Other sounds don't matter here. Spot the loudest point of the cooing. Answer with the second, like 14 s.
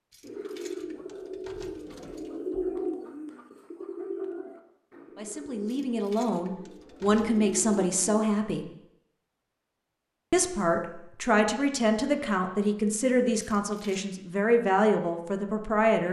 3 s.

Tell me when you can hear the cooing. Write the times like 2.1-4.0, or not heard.
0.2-8.2.